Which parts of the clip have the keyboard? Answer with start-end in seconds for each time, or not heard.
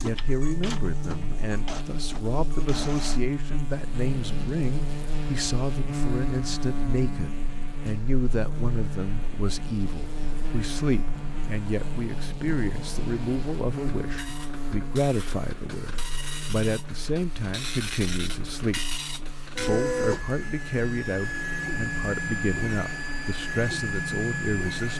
not heard.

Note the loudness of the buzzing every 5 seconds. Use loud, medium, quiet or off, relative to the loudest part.
loud, loud, loud, medium, medium.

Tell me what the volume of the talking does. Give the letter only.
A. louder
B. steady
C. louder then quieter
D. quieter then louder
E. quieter
B.